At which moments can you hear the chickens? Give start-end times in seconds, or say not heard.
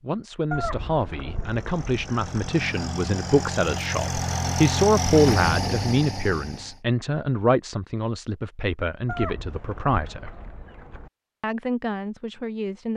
0.5-2.5, 9.1-11.1.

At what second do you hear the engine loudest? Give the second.
5 s.